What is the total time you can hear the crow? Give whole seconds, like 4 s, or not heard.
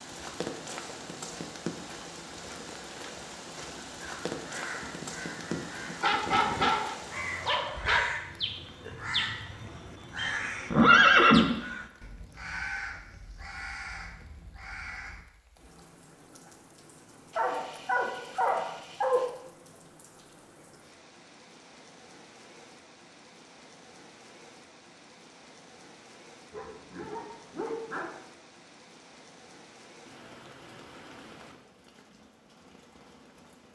11 s.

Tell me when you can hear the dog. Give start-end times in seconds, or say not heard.
6.0-8.0, 17.3-19.3, 26.5-28.1.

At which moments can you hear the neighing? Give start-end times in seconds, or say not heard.
10.2-11.5.